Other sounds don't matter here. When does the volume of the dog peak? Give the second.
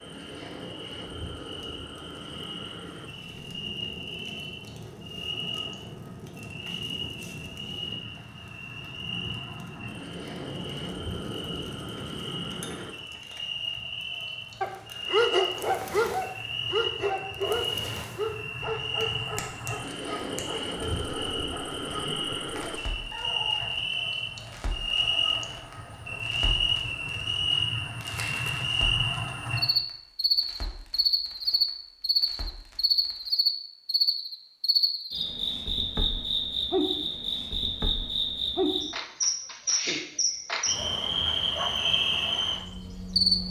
15 s.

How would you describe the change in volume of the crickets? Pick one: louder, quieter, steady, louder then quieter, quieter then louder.
louder.